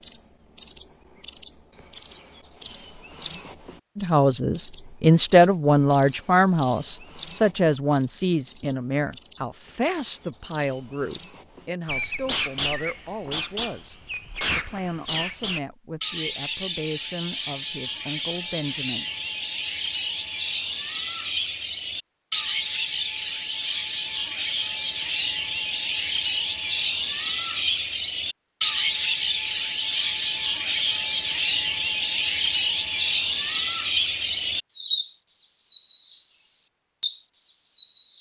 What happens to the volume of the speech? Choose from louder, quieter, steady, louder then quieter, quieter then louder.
quieter.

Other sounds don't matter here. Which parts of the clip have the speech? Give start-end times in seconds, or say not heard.
4.0-13.9, 14.6-19.1.